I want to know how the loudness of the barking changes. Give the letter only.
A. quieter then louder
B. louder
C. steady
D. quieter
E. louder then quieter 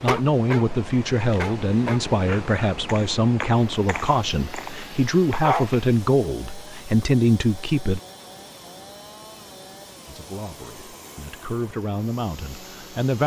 A.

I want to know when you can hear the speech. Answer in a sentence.
The speech can be heard from 0.0 to 8.0 s and from 10.1 to 13.2 s.